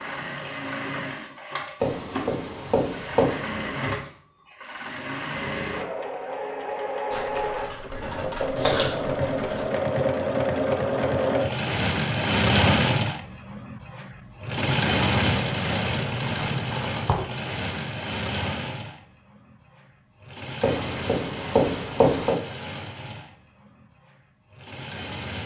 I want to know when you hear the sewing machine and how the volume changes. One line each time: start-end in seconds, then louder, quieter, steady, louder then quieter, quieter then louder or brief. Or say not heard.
0.0-25.4 louder then quieter.